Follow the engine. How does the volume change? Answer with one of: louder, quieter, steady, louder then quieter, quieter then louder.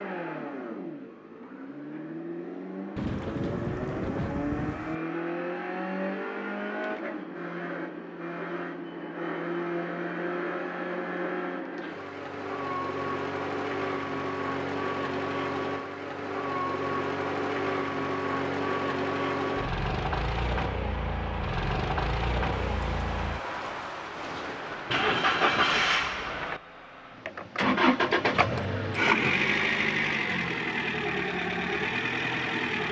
louder.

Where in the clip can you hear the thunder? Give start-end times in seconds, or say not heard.
3.0-5.0, 22.5-25.9.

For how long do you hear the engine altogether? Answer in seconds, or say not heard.
33 s.